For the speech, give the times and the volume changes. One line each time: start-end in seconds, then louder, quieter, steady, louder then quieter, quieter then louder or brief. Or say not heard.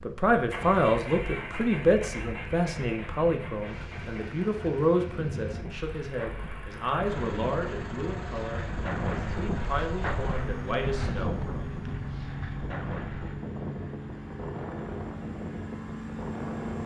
0.0-11.4 quieter.